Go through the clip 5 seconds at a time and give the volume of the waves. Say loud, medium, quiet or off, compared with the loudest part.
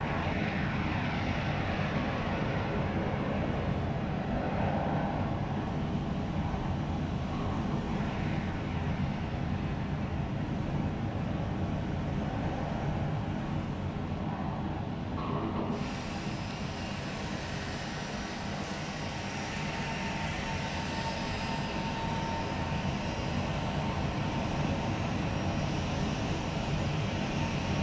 loud, loud, loud, medium, loud, loud.